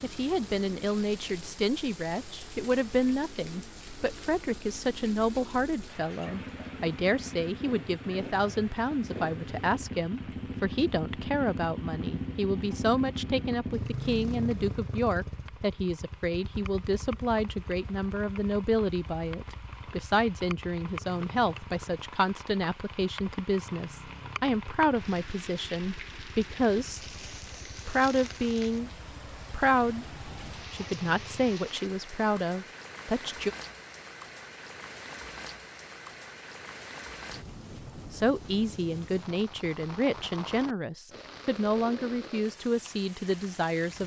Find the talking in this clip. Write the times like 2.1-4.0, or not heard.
0.0-27.1, 27.9-28.9, 29.5-33.5, 38.1-44.0.